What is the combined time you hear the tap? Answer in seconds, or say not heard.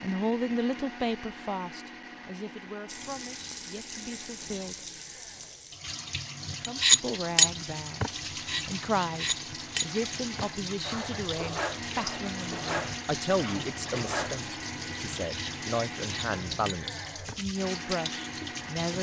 16 s.